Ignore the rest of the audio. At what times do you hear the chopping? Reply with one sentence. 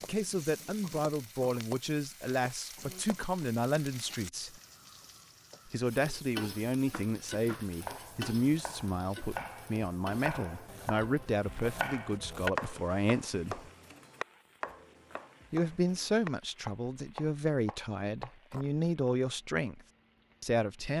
You can hear the chopping from 6.9 to 18.6 s.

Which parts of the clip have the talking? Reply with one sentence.
You can hear the talking from 0.1 to 4.5 s, from 5.7 to 13.7 s, from 15.5 to 19.8 s and from 20.4 to 20.9 s.